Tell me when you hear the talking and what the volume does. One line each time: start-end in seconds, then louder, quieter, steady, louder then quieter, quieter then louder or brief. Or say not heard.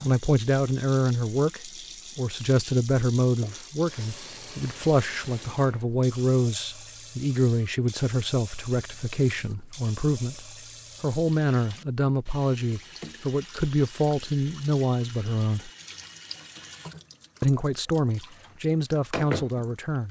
0.0-15.7 steady
17.4-20.0 brief.